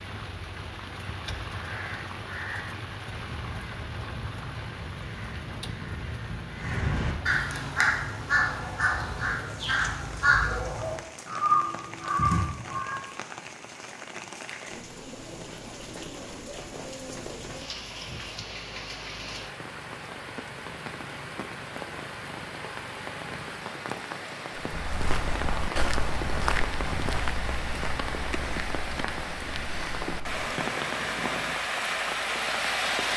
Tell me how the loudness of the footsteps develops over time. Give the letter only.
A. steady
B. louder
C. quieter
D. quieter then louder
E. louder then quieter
C.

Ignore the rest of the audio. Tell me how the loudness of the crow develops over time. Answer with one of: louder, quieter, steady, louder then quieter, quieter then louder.
louder.